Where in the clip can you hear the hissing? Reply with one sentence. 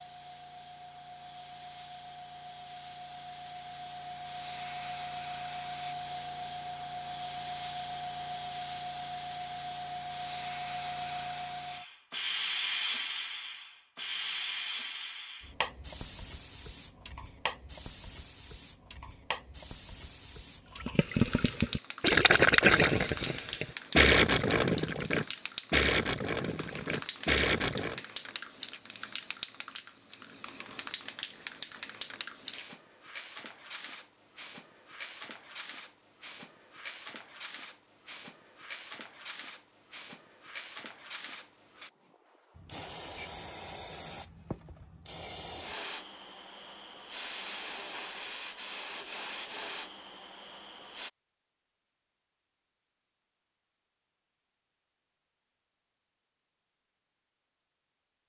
The hissing can be heard from 0.0 to 51.1 s.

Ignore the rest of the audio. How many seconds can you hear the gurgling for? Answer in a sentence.
The gurgling can be heard for 7 seconds in total.